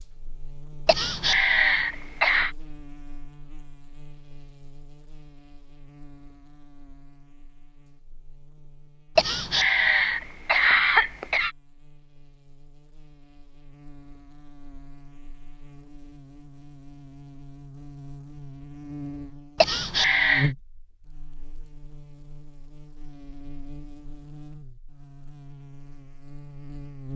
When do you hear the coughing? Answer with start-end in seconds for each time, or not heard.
0.8-2.5, 9.2-11.5, 19.6-20.5.